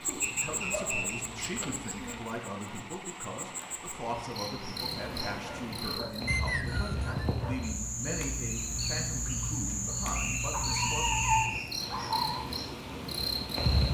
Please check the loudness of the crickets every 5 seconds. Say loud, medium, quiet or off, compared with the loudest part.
medium, loud, loud.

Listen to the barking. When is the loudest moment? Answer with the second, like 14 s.
11 s.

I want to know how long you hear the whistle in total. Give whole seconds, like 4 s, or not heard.
4 s.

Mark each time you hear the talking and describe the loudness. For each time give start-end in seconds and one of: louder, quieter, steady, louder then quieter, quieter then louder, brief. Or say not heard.
0.0-11.2 steady.